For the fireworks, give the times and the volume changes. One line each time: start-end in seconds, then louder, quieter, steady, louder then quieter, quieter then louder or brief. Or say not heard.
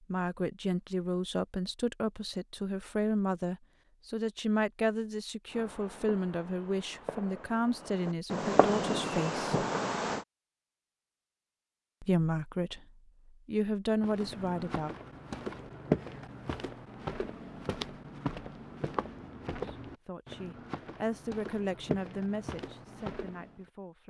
5.5-10.2 louder.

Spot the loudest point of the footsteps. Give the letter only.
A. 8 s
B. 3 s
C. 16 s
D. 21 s
C.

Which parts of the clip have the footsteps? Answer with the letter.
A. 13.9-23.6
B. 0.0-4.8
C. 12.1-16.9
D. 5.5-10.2
A.